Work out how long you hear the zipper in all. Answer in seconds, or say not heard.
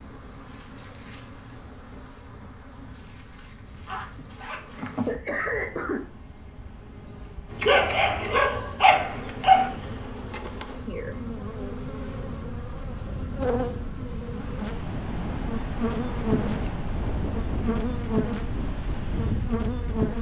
2 s.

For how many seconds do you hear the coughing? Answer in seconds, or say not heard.
2 s.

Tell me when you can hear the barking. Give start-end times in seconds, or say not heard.
7.5-9.7.